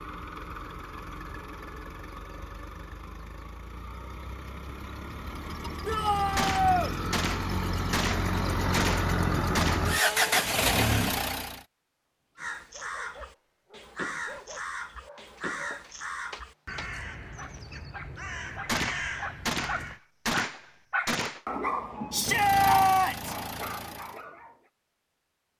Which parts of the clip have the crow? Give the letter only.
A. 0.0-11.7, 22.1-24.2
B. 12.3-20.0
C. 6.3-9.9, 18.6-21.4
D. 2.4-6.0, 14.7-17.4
B.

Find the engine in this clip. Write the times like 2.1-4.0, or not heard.
0.0-11.7, 22.1-24.2.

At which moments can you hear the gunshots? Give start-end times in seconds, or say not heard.
6.3-9.9, 18.6-21.4.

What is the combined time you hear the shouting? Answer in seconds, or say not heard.
3 s.